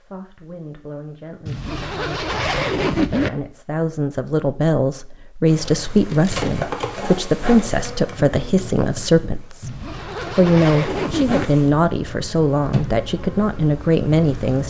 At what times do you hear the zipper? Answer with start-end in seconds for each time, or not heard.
1.4-3.3, 9.6-11.5.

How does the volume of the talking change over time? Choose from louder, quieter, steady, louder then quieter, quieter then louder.
louder.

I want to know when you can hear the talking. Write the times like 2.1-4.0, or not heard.
0.0-14.6.